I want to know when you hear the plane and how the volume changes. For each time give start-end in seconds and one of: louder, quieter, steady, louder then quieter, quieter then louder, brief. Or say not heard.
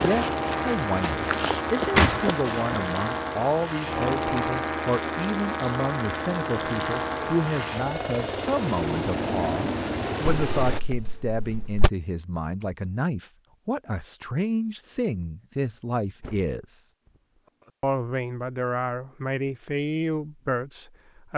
0.0-10.8 steady.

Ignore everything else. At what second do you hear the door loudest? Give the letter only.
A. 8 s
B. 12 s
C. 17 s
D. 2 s
D.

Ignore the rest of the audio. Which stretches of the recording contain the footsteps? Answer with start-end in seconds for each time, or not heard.
0.0-2.4.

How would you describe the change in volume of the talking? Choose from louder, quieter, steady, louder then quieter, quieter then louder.
steady.